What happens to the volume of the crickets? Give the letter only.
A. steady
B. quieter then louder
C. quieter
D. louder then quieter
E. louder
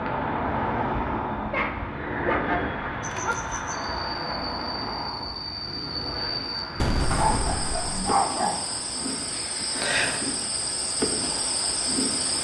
E.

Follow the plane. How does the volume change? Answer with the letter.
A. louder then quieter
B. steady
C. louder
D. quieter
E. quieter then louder
D.